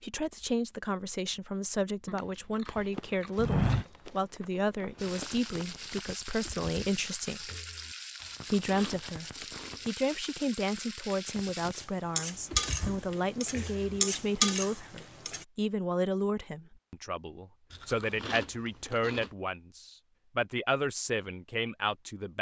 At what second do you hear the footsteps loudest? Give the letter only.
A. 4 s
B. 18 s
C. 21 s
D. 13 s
A.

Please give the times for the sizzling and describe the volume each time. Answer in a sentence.
You can hear the sizzling from 5.0 to 15.4 s, getting louder.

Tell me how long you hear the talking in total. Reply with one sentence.
The talking can be heard for 21 seconds in total.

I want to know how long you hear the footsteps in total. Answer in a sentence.
You can hear the footsteps for 3 seconds altogether.